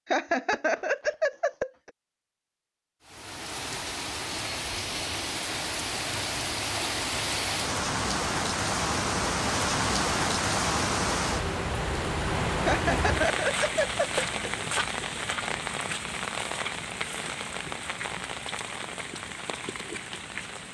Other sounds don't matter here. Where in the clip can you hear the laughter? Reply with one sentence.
The laughter can be heard from 0.1 to 1.9 s and from 12.7 to 14.6 s.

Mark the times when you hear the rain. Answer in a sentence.
You can hear the rain from 3.0 to 20.6 s.